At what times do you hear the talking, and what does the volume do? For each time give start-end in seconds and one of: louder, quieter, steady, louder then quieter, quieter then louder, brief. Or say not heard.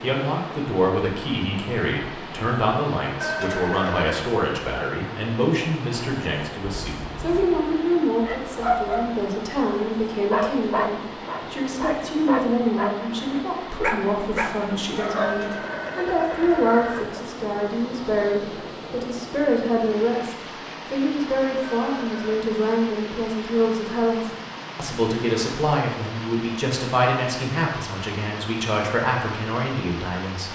0.0-30.5 steady.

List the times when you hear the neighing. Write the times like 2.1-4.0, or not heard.
3.2-4.2, 15.2-17.2, 21.6-22.4.